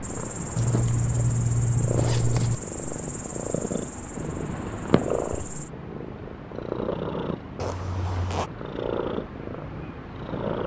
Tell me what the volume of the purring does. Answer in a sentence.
The loudness of the purring stays about the same.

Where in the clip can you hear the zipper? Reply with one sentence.
The zipper can be heard from 0.6 to 2.5 s and from 7.5 to 8.5 s.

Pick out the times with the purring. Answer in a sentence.
The purring can be heard from 0.0 to 10.6 s.